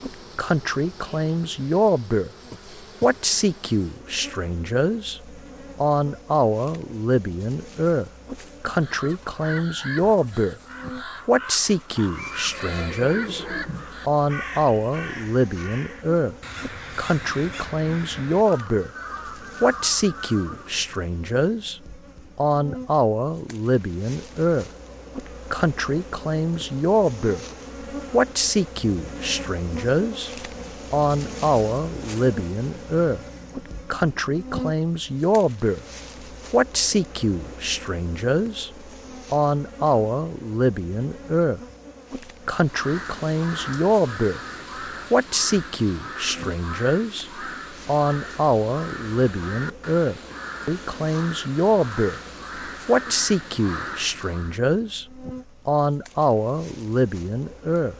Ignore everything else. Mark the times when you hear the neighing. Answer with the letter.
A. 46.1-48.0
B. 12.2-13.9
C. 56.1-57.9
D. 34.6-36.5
B.